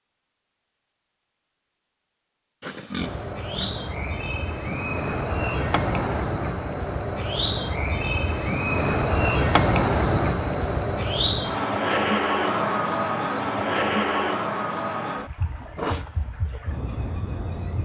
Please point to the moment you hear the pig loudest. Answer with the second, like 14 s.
3 s.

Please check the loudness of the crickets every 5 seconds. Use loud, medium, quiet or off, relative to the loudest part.
medium, loud, loud, medium.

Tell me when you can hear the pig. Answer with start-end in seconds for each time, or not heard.
2.6-4.2.